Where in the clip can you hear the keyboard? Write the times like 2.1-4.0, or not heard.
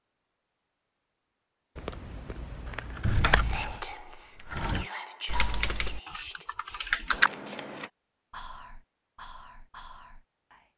5.2-7.3.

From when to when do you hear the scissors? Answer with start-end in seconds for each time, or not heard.
1.8-3.9, 7.1-7.9.